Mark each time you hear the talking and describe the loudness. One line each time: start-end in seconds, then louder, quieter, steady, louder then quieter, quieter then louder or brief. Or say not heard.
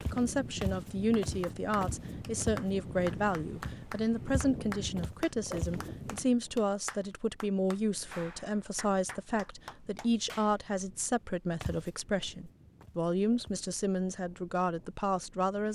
0.0-15.6 steady.